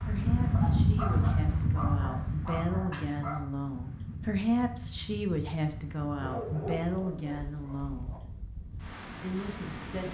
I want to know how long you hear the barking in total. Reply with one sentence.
The barking can be heard for 5 seconds in total.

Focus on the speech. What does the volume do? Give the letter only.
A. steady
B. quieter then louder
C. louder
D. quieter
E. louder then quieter
E.